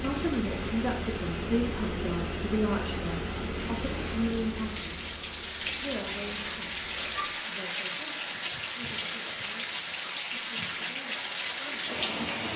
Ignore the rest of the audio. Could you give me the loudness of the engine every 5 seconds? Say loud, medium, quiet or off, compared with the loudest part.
loud, quiet, off.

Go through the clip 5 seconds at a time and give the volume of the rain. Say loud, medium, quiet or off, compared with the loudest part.
medium, loud, loud.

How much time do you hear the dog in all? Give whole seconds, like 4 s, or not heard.
not heard.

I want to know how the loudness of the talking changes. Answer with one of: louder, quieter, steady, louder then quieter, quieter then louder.
quieter.